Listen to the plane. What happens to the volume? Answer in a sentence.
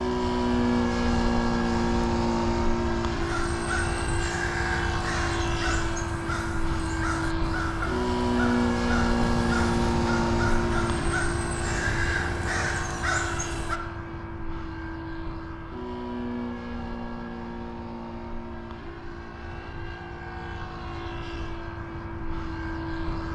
The volume of the plane goes down.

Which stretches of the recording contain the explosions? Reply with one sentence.
The explosions can be heard from 9.2 to 12.9 s.